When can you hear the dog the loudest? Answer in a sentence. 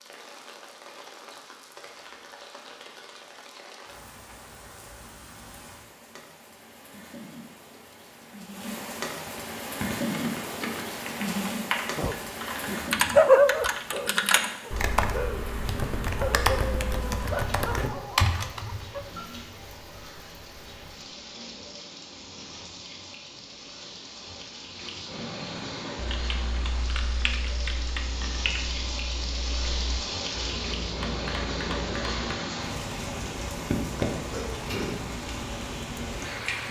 The volume of the dog peaks at 13 seconds.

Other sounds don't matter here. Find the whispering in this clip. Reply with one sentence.
You can't hear the whispering here.